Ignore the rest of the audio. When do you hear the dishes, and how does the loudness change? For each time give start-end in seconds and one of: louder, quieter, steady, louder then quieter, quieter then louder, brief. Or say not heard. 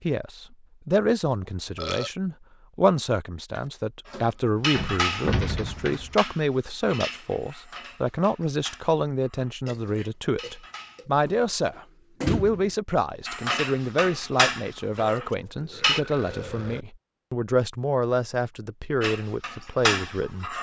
3.5-11.1 quieter
13.2-16.0 brief
19.0-20.5 brief.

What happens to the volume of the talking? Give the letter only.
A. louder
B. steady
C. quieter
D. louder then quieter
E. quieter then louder
B.